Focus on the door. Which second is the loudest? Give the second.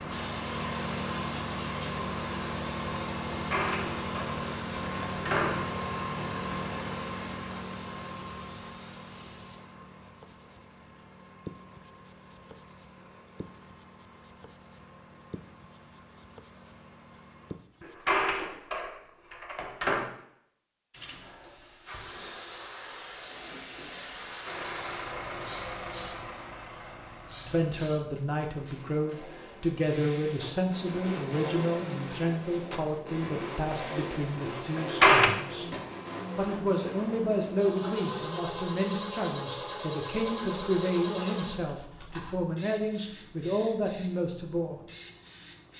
35 s.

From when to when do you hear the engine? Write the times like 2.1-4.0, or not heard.
0.0-17.6, 24.4-42.4.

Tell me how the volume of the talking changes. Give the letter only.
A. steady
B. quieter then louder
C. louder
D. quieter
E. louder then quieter
A.